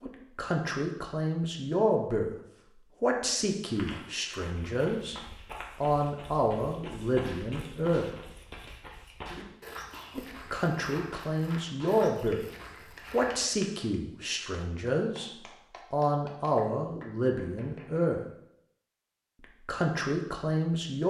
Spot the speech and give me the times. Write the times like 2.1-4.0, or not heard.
0.0-2.3, 3.0-5.2, 5.8-8.1, 10.2-12.4, 13.1-18.2, 19.4-21.0.